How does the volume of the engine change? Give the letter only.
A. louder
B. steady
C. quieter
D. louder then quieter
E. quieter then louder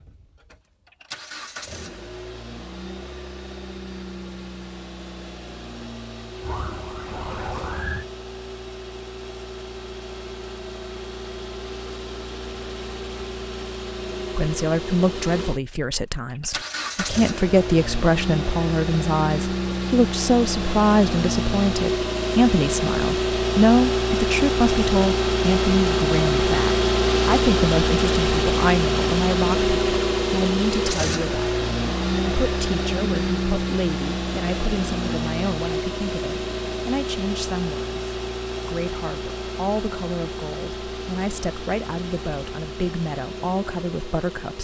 D.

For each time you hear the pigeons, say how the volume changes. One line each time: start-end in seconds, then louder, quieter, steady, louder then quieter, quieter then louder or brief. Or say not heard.
not heard.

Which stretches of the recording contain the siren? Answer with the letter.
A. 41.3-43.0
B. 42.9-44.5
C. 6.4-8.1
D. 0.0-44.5
C.